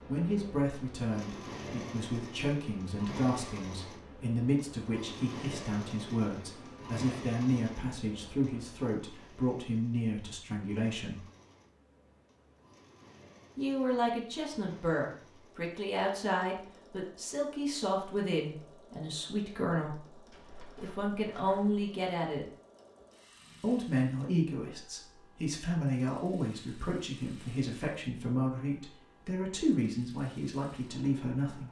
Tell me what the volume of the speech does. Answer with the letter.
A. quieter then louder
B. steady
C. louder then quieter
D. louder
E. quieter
B.